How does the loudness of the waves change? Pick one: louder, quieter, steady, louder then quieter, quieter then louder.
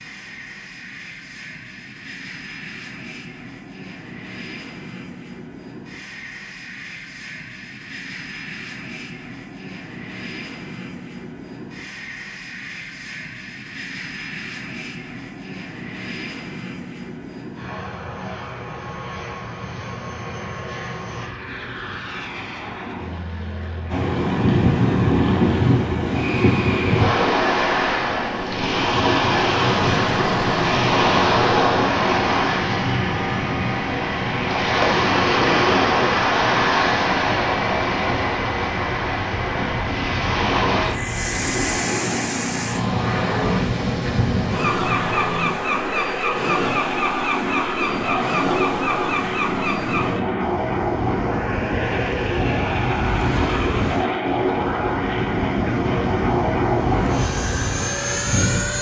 quieter.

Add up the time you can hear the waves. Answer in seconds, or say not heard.
35 s.